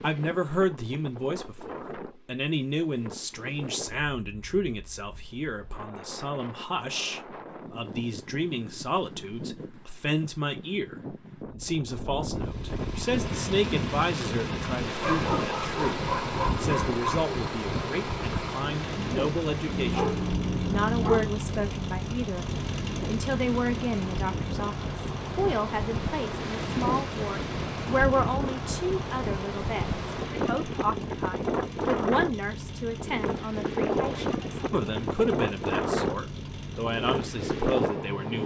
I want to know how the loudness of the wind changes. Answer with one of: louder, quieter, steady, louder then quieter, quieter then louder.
louder.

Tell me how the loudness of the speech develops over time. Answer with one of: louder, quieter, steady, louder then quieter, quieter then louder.
steady.